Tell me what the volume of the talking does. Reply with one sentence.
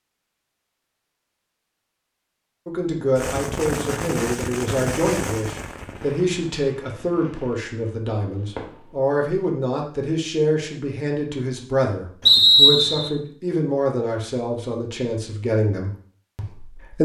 The volume of the talking stays about the same.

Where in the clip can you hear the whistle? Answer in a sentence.
The whistle can be heard from 12.2 to 13.1 s.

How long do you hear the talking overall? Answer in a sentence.
The talking can be heard for 14 seconds in total.